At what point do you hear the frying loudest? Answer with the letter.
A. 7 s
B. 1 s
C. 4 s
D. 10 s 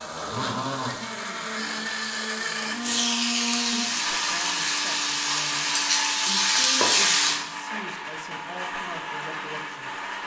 A.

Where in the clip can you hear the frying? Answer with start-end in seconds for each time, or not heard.
0.0-7.4.